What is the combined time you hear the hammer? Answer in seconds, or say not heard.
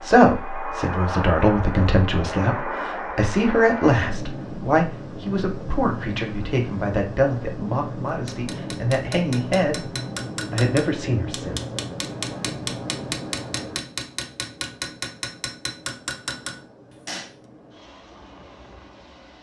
9 s.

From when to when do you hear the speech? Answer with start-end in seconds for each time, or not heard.
0.0-9.8, 10.5-11.6.